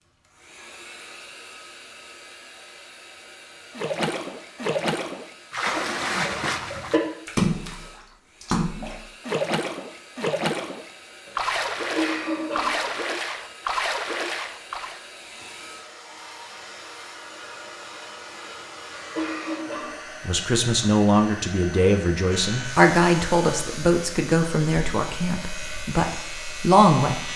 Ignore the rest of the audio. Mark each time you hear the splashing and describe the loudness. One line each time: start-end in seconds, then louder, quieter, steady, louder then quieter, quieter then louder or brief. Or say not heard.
3.8-15.0 steady.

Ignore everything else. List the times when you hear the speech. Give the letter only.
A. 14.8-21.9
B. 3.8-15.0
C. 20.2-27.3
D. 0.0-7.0
C.